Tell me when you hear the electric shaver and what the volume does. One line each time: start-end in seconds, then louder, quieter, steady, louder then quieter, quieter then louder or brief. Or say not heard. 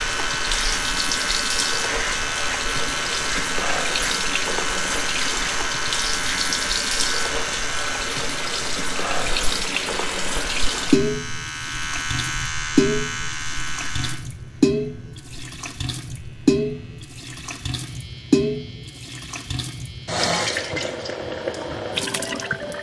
0.0-22.7 quieter.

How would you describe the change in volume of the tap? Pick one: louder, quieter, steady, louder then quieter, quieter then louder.
steady.